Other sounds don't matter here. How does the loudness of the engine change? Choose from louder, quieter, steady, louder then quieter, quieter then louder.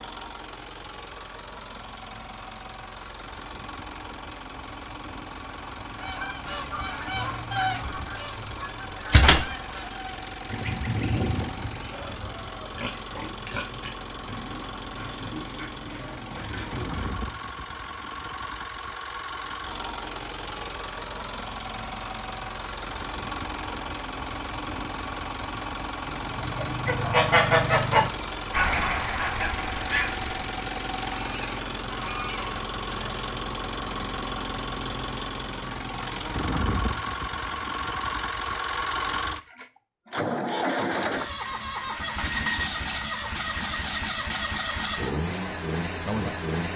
louder.